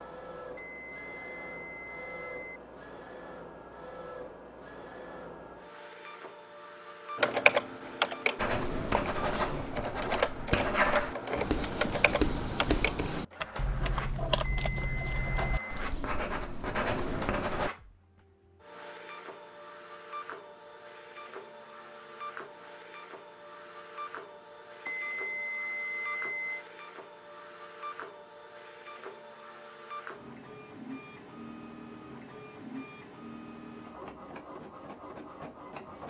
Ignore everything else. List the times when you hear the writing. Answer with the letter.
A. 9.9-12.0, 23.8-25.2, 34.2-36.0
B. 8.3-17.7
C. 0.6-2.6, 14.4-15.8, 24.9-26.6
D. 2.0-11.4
B.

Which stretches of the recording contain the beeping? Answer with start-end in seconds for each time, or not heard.
0.6-2.6, 14.4-15.8, 24.9-26.6.